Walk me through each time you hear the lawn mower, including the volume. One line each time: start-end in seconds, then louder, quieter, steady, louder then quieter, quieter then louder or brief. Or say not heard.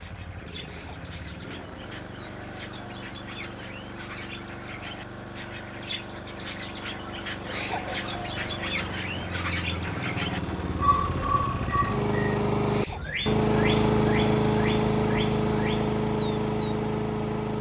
0.0-17.5 louder.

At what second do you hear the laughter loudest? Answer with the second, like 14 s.
8 s.